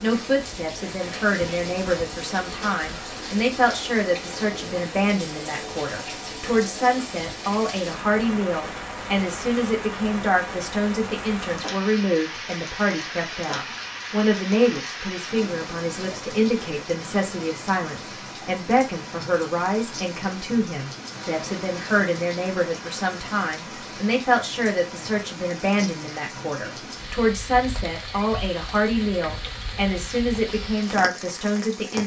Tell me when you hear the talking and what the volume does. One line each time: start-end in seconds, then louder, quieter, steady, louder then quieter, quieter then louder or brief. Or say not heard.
0.0-32.0 steady.